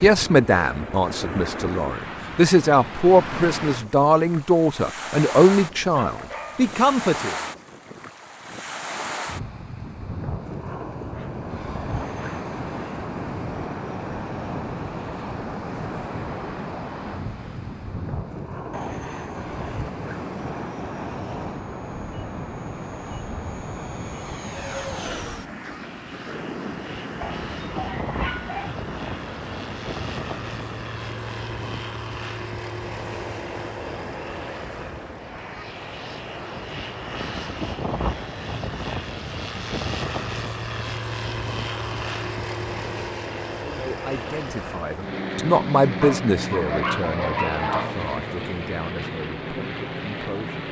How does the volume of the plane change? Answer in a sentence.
The volume of the plane goes up.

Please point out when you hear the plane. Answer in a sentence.
You can hear the plane from 11.1 to 50.6 s.